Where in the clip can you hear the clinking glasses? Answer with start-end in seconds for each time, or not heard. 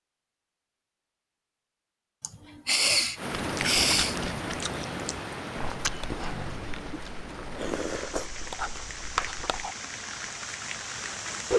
not heard.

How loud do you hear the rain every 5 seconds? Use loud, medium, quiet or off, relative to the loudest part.
loud, medium, loud.